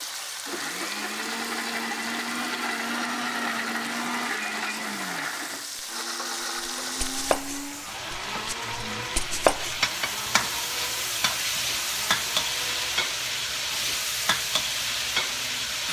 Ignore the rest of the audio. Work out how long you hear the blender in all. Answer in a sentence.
The blender can be heard for 16 seconds in total.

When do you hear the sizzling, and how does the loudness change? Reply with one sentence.
You can hear the sizzling from 0.0 to 15.8 s, getting louder.